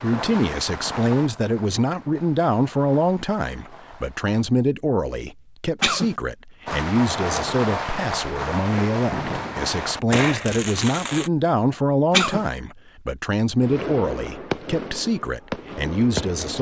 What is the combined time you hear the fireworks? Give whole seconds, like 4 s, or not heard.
12 s.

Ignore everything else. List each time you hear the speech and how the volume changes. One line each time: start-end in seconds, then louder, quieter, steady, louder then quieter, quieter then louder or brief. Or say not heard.
0.0-16.5 steady.